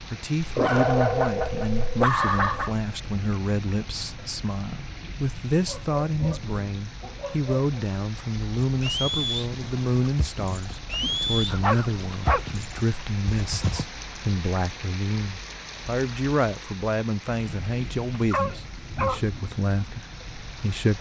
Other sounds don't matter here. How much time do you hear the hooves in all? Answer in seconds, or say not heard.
5 s.